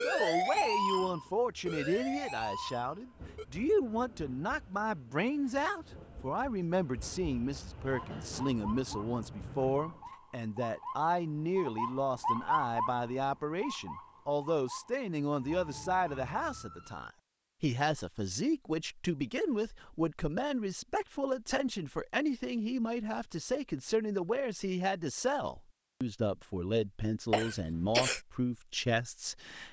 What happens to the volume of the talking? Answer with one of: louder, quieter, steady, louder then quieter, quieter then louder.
steady.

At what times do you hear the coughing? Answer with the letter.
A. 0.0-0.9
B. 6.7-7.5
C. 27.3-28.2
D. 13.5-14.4
C.